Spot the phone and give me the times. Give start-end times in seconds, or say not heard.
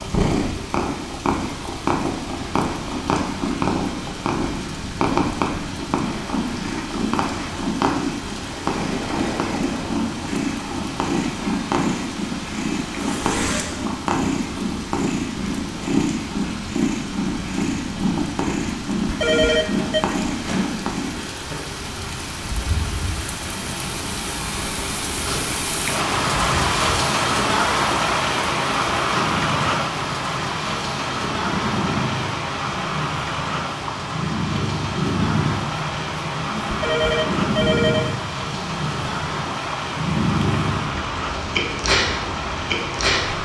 19.1-20.0, 36.7-38.1.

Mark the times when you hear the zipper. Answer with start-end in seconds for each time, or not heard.
12.9-13.8.